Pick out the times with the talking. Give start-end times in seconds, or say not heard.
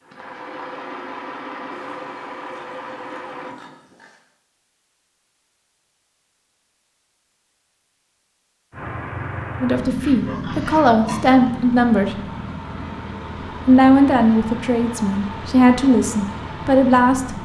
9.6-12.2, 13.7-17.4.